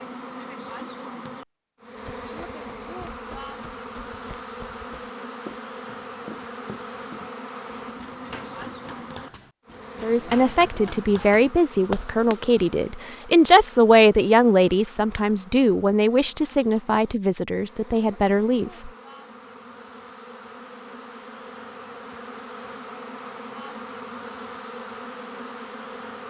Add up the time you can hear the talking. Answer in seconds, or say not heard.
9 s.